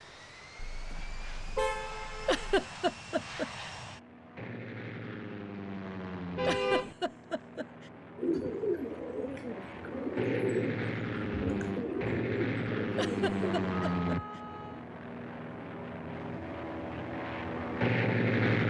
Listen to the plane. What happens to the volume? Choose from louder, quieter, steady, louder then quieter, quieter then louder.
louder.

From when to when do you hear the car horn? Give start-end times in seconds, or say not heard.
0.6-2.6, 6.3-7.0, 13.7-14.9.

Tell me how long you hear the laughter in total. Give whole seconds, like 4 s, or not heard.
4 s.